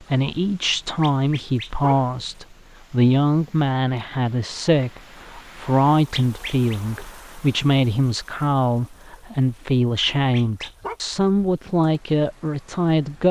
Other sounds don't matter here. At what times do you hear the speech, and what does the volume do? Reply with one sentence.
The speech can be heard from 0.1 to 13.2 s, at a steady volume.